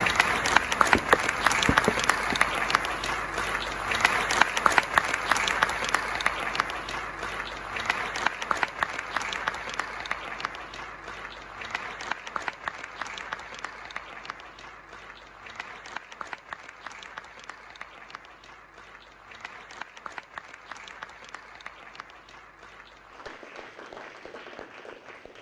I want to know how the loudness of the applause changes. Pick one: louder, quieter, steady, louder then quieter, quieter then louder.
quieter.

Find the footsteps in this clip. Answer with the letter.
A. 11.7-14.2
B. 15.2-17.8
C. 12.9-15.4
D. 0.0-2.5
D.